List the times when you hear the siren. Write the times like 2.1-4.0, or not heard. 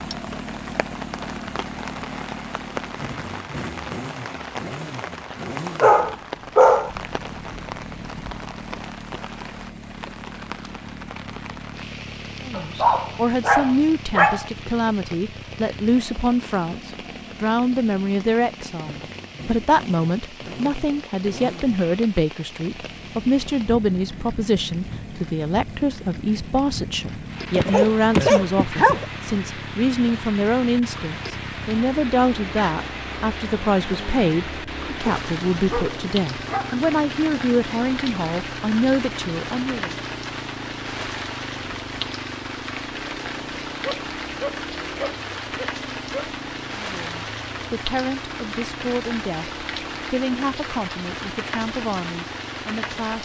not heard.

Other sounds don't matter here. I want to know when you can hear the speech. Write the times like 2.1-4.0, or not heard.
12.4-40.0, 46.7-53.2.